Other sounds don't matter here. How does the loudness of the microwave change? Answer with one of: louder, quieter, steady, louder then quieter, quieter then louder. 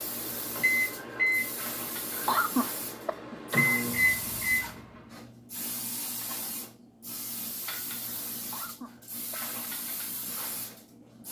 quieter then louder.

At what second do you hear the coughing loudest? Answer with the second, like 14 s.
2 s.